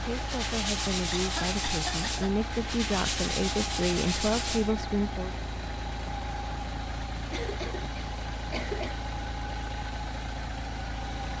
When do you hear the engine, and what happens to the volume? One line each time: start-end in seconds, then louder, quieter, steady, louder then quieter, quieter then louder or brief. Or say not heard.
0.0-11.3 steady.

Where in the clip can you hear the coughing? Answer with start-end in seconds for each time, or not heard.
1.1-2.3, 7.3-8.9.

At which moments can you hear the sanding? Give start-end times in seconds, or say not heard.
0.0-4.8.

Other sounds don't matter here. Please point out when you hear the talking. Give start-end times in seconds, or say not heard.
0.0-5.5.